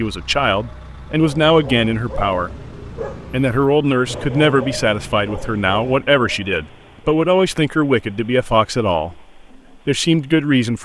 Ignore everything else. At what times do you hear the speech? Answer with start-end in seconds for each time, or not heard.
0.0-2.5, 3.3-10.8.